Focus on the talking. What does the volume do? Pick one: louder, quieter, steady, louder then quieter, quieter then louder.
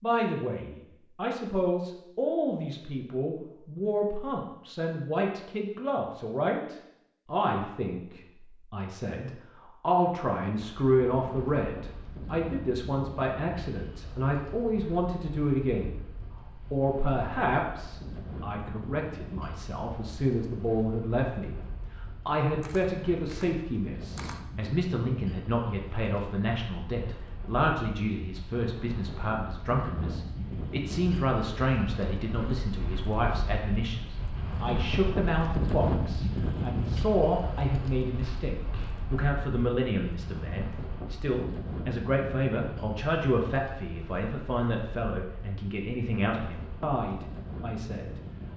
steady.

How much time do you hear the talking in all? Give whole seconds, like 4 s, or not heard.
47 s.